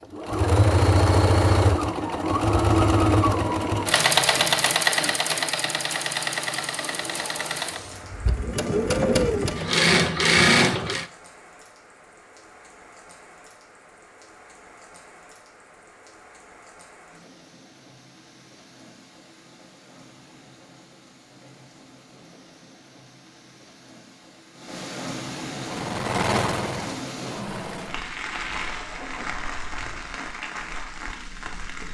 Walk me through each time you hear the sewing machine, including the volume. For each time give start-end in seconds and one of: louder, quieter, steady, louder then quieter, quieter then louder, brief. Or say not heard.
0.1-11.1 quieter then louder
25.5-28.1 brief.